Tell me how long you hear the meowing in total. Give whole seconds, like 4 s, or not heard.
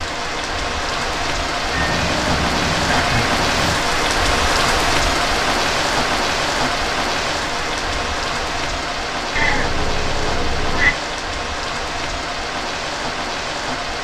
4 s.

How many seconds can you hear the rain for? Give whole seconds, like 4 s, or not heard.
14 s.